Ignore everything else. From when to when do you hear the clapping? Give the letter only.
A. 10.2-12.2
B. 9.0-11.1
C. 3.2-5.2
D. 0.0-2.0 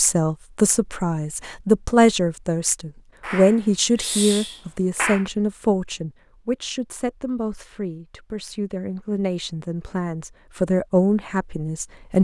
C.